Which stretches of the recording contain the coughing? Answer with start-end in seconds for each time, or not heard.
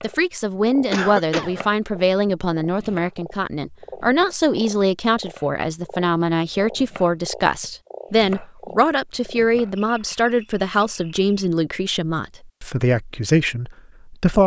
0.9-1.6.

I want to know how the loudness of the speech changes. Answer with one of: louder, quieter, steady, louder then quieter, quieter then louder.
steady.